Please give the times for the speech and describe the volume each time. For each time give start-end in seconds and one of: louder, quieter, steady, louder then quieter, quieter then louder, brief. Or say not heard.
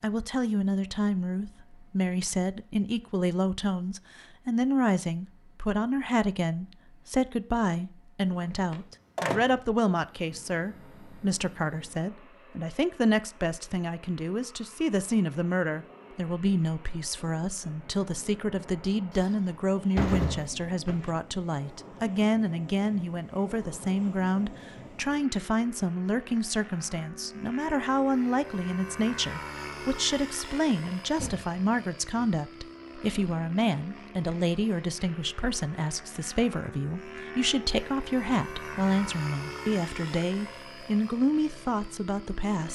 0.0-42.6 steady.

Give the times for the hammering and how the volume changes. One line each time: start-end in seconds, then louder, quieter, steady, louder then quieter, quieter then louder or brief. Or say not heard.
not heard.